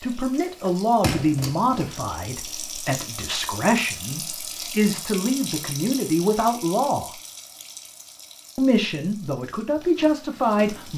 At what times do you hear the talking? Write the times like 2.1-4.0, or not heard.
0.0-7.1, 8.6-10.9.